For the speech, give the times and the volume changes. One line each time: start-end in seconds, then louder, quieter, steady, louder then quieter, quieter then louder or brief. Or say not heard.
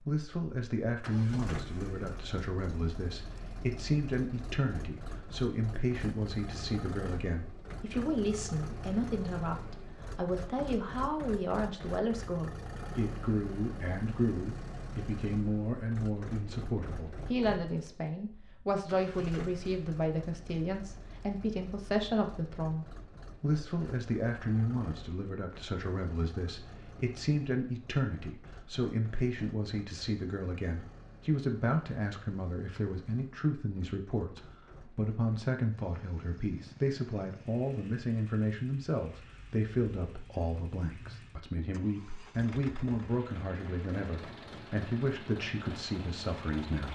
0.1-46.9 steady.